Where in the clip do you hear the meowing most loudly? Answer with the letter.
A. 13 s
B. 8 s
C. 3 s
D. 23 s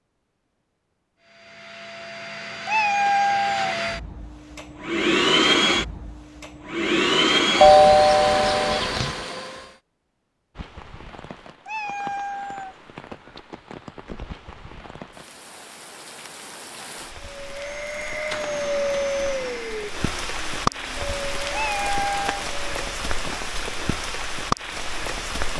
C.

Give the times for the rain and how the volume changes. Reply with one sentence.
The rain can be heard from 10.6 to 25.5 s, getting louder.